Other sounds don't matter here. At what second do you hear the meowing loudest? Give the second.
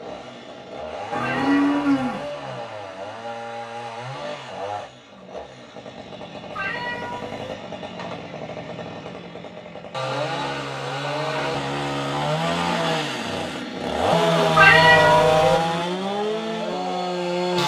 15 s.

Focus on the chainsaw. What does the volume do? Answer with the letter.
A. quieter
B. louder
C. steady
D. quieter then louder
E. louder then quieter
B.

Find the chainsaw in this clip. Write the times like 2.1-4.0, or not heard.
0.0-17.6.